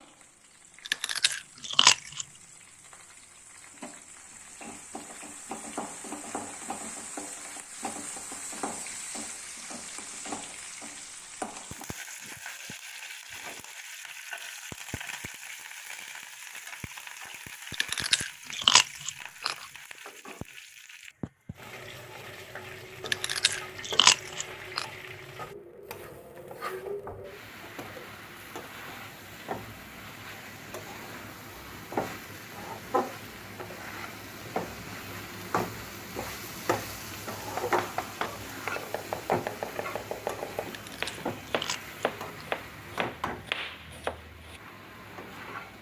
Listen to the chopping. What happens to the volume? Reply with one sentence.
The loudness of the chopping stays about the same.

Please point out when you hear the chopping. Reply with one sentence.
You can hear the chopping from 37.5 to 44.6 s.